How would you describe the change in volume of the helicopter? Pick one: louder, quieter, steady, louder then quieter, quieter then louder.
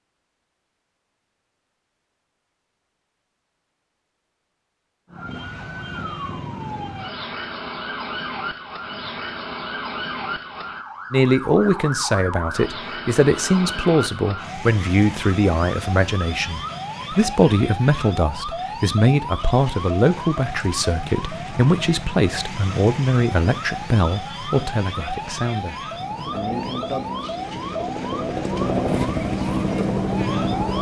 louder.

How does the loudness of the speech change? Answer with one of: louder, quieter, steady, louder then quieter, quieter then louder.
quieter.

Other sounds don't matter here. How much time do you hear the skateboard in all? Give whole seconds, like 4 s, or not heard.
not heard.